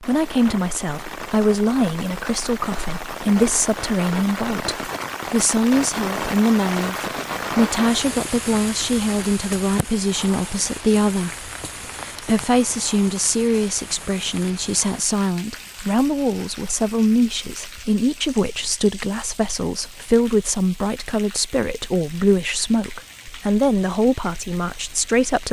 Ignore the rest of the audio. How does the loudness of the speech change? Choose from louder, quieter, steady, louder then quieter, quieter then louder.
steady.